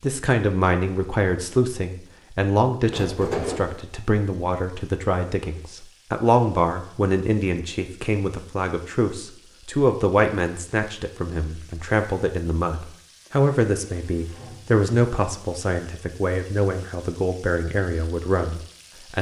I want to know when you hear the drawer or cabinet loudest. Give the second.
3 s.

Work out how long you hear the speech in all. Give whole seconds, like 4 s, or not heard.
19 s.